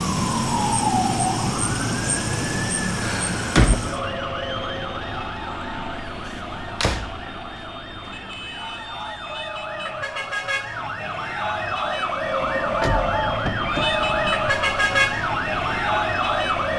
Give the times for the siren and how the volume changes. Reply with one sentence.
You can hear the siren from 0.0 to 16.7 s, getting quieter then louder.